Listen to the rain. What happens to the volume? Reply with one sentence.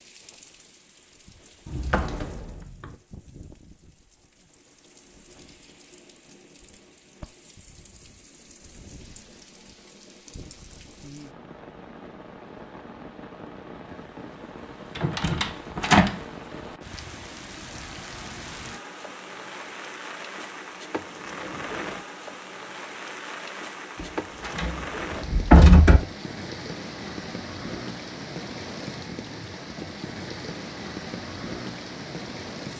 The loudness of the rain goes up.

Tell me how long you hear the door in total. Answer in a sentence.
You can hear the door for 4 seconds altogether.